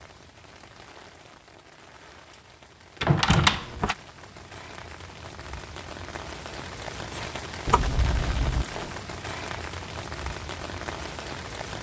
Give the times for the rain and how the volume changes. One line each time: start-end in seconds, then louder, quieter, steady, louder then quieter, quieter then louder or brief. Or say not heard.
0.0-11.7 louder.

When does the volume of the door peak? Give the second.
3 s.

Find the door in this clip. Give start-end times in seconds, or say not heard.
3.0-4.0, 7.7-8.9.